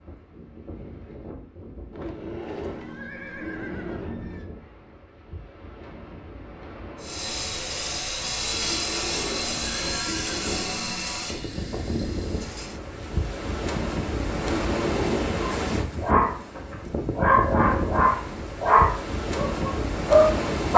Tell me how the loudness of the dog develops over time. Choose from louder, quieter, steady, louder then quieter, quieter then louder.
louder.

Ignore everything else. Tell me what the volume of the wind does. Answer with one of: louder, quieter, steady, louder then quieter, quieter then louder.
louder.